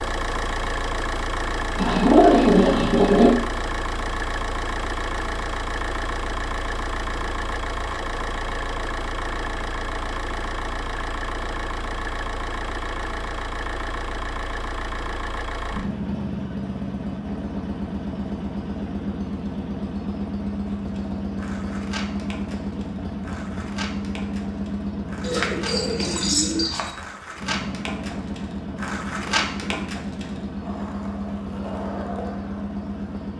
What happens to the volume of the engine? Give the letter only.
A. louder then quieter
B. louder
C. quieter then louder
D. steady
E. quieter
D.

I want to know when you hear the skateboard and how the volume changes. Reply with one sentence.
You can hear the skateboard from 20.8 to 33.3 s, getting louder then quieter.